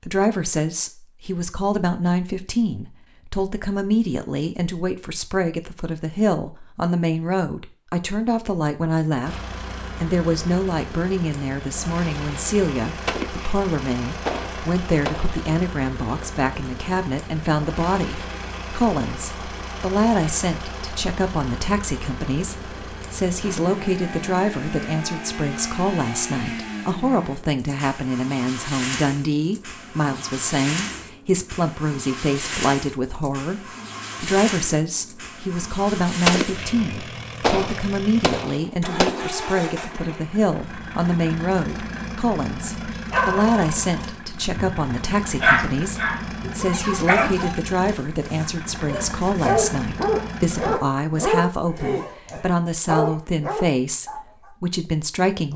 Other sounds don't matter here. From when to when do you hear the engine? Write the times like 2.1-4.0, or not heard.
9.2-50.8.